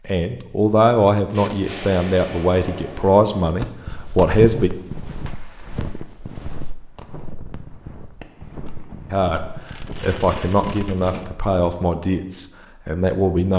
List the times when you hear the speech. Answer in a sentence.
You can hear the speech from 0.1 to 4.7 s and from 9.1 to 13.5 s.